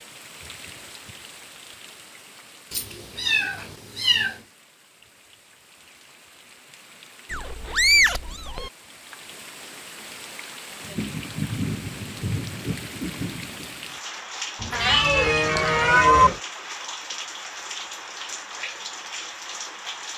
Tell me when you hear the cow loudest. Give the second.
16 s.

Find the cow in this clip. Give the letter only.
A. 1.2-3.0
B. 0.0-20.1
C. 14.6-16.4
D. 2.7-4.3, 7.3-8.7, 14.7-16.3
C.